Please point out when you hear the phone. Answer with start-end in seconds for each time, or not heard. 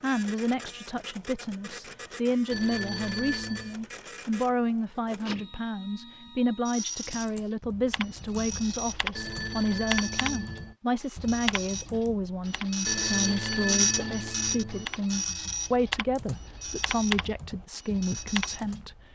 2.5-3.8, 9.2-10.8, 12.8-14.8.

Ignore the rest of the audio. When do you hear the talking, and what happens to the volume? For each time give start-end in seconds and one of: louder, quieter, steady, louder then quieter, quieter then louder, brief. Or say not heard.
0.0-18.9 steady.